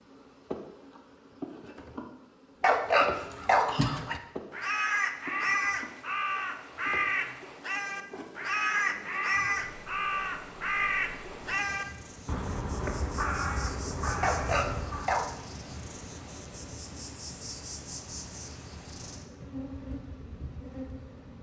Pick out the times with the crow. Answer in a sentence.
You can hear the crow from 3.2 to 15.3 s.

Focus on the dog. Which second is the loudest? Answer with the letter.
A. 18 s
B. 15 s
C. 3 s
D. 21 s
C.